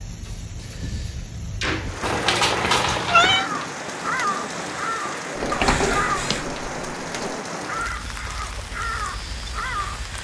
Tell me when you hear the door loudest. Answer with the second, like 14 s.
6 s.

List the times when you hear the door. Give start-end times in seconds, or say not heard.
0.2-2.1, 5.3-7.4.